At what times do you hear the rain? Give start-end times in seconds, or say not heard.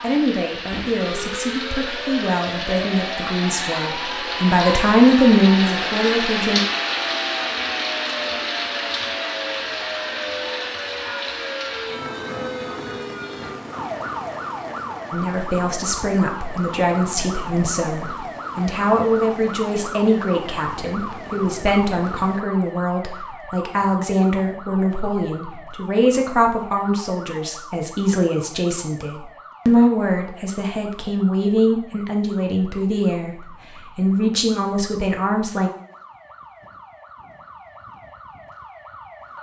0.0-22.4.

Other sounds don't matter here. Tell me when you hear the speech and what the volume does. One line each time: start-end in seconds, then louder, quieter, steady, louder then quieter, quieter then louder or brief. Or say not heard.
0.0-6.6 louder
15.1-35.7 steady.